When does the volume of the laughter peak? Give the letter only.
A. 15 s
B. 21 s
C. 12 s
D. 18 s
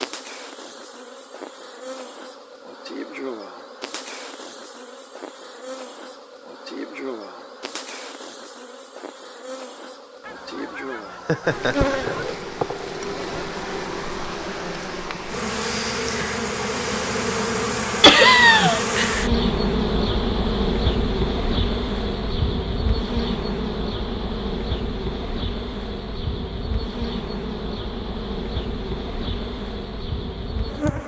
D.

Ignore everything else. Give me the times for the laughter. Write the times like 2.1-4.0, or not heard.
11.2-11.9, 18.0-18.9.